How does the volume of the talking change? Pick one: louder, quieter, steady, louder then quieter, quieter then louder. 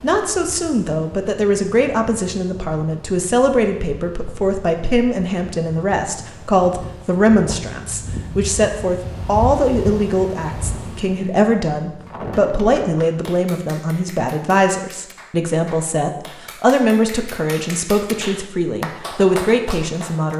steady.